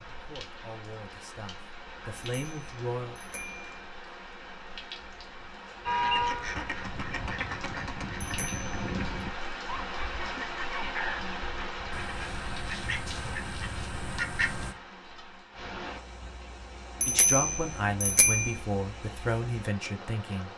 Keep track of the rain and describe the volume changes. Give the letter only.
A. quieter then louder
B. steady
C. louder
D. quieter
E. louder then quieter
E.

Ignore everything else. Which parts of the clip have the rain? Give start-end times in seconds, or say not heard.
0.0-20.5.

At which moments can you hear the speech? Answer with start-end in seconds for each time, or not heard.
0.1-3.1, 17.1-20.5.